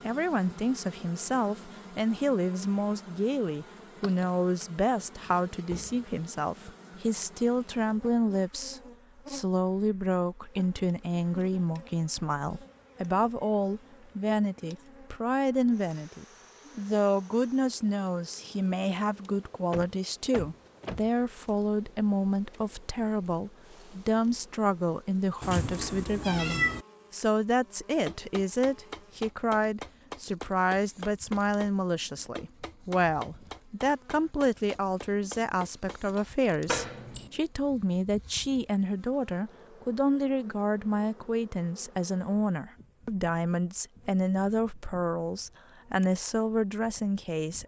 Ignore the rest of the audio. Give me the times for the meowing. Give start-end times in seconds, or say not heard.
25.4-26.9.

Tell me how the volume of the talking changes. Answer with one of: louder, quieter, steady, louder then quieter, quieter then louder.
steady.